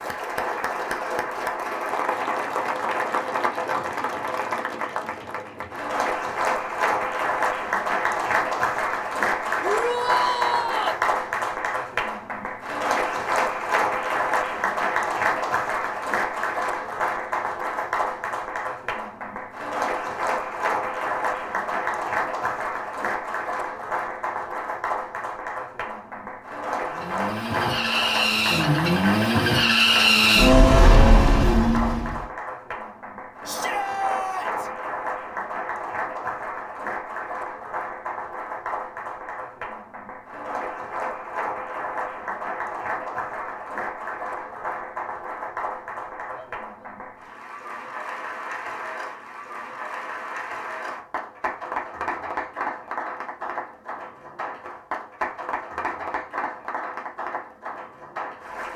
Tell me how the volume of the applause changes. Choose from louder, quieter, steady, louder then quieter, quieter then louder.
quieter.